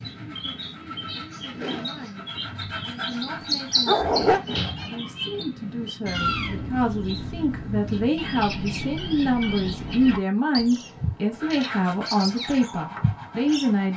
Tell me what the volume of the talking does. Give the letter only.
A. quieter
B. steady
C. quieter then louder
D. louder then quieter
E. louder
E.